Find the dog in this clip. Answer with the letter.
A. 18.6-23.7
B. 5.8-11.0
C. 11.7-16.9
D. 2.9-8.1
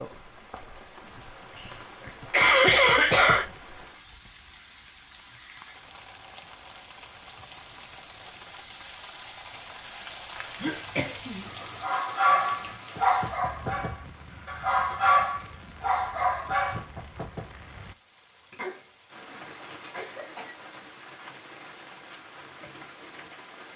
C.